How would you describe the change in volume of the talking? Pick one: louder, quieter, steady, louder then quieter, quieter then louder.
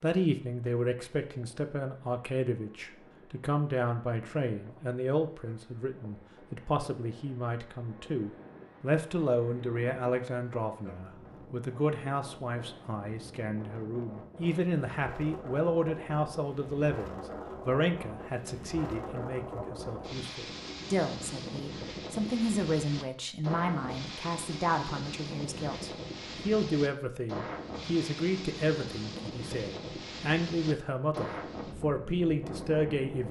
steady.